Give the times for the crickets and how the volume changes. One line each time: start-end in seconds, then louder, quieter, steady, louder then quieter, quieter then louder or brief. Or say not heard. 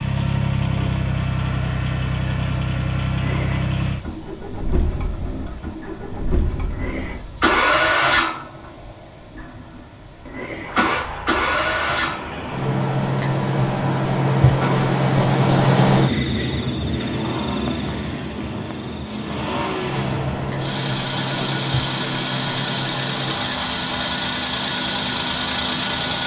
0.0-26.2 louder then quieter.